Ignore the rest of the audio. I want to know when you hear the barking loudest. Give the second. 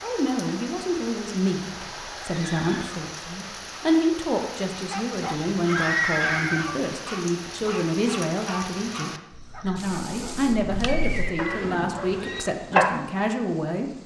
13 s.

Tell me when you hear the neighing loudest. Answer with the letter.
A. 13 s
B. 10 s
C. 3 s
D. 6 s
D.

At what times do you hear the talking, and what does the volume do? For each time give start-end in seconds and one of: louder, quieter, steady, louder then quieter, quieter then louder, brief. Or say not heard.
0.0-13.9 steady.